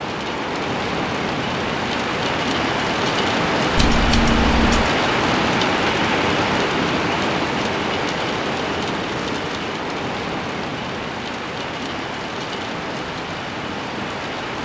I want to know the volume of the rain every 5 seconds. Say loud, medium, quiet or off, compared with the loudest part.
loud, loud, medium.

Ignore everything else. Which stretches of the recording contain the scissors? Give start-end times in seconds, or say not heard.
3.8-4.9.